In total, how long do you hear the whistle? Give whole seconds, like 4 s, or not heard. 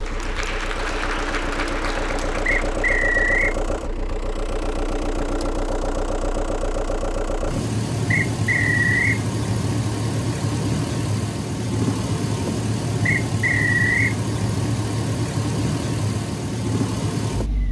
3 s.